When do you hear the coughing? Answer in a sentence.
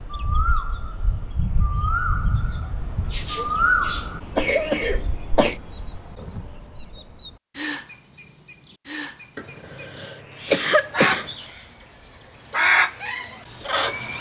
The coughing can be heard from 3.1 to 5.6 s and from 9.3 to 11.3 s.